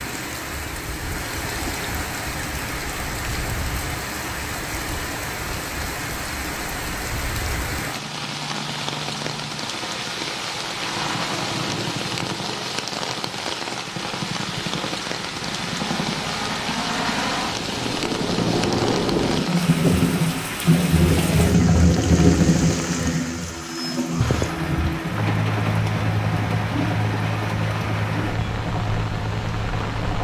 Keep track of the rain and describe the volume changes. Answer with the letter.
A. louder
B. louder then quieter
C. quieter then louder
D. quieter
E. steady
E.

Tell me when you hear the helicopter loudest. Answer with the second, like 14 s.
22 s.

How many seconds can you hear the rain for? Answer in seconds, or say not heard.
30 s.